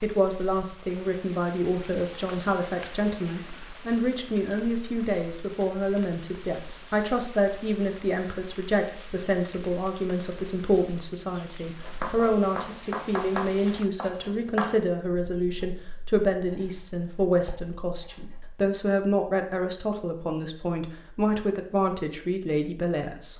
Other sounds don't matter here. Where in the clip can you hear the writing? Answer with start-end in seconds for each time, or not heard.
11.8-18.6.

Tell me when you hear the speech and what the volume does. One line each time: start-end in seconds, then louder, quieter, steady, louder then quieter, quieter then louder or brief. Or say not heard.
0.0-23.3 steady.